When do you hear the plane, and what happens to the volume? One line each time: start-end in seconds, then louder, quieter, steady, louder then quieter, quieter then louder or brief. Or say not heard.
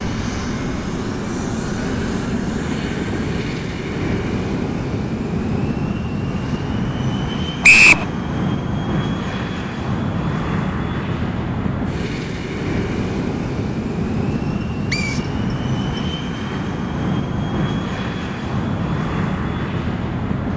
0.0-20.5 steady.